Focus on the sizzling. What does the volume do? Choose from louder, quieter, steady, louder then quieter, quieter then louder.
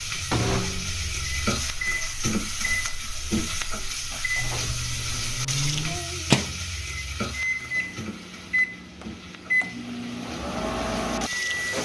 quieter.